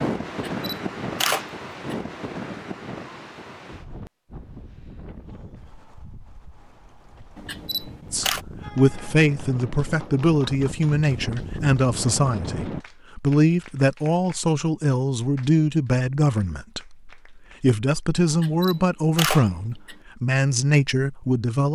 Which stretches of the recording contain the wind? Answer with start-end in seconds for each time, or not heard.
0.0-12.8.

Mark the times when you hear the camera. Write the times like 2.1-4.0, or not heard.
0.3-1.9, 7.3-8.4, 18.3-19.9.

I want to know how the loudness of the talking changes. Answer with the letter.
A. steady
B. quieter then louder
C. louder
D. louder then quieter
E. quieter
A.